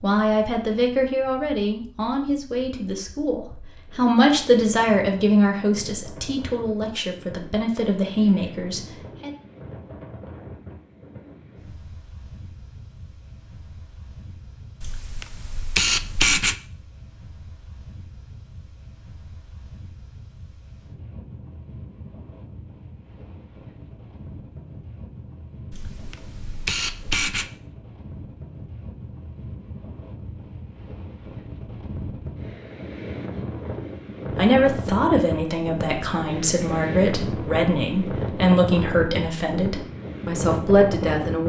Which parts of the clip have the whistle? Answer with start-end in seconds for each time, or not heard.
not heard.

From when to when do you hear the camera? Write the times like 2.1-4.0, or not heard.
14.8-16.6, 25.7-27.5.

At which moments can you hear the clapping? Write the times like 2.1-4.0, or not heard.
not heard.